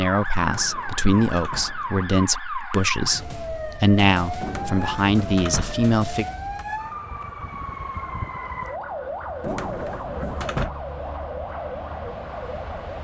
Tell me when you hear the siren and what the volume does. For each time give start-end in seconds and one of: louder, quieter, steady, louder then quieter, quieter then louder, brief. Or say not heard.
0.0-12.9 steady.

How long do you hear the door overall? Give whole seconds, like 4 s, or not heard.
5 s.